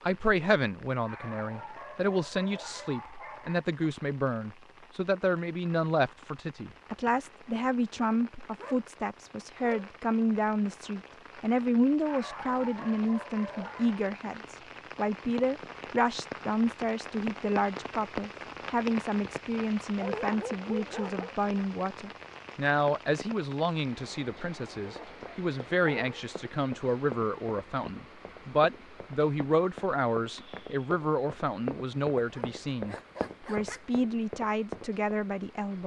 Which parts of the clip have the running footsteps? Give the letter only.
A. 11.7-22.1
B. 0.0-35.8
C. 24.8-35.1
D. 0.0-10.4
C.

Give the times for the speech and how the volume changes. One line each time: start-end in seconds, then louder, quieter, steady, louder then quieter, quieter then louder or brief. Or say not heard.
0.0-35.8 steady.